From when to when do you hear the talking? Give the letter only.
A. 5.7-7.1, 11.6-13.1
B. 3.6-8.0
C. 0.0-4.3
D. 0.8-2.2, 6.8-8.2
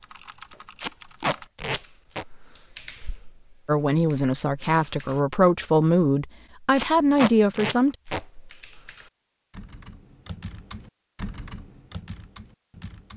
B.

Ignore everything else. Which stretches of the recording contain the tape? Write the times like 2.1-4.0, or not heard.
0.8-2.2, 6.8-8.2.